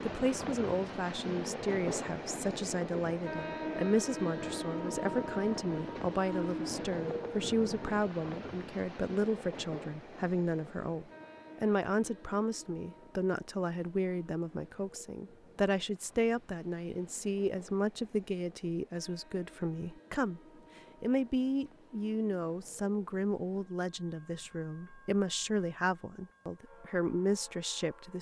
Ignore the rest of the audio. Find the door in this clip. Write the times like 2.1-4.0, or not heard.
not heard.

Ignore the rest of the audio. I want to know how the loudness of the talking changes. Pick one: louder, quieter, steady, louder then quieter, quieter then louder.
steady.